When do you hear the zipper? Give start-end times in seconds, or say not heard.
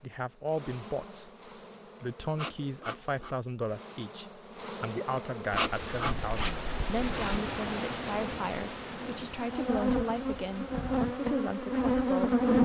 5.6-7.4.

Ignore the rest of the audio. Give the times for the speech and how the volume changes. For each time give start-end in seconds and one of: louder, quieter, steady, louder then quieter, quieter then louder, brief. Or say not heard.
0.0-1.3 brief
2.0-12.4 steady.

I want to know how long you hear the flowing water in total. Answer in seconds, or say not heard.
7 s.